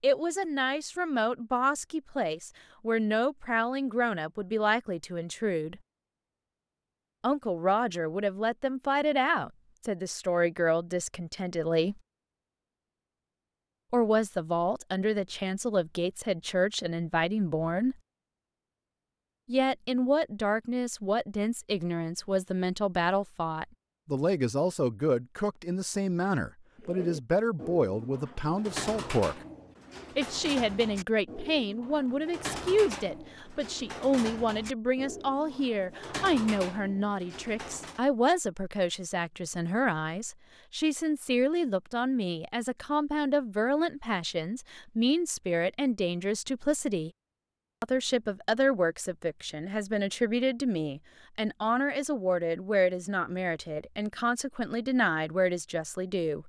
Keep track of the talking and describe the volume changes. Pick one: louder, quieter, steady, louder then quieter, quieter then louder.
steady.